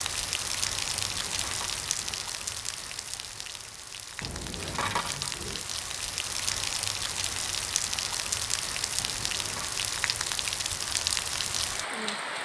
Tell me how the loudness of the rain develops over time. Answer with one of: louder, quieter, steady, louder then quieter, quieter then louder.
quieter then louder.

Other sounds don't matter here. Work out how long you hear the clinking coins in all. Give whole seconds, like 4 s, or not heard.
4 s.